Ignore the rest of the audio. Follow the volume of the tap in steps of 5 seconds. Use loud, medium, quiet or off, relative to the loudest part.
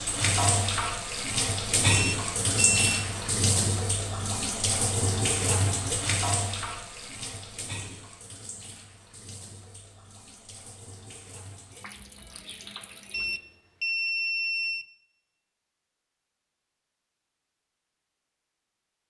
loud, medium, quiet, off.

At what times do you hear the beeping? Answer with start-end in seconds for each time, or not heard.
1.9-3.1, 13.1-14.8.